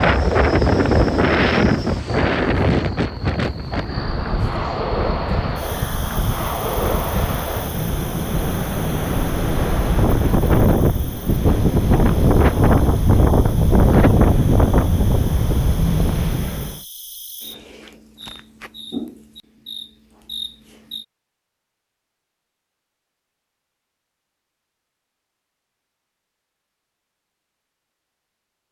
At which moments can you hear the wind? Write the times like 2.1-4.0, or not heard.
0.0-16.8.